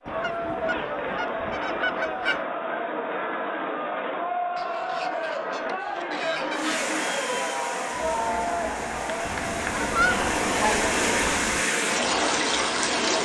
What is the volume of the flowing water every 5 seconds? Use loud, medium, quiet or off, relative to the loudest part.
off, medium, loud.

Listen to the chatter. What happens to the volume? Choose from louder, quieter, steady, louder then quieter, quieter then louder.
steady.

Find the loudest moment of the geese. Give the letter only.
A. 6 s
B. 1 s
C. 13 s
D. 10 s
D.